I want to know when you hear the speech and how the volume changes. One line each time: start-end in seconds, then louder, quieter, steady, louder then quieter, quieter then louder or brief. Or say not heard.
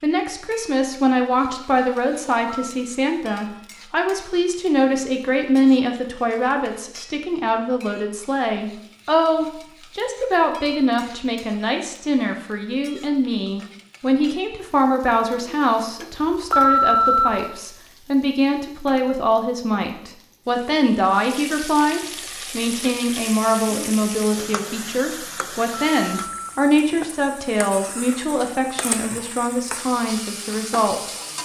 0.0-31.1 steady.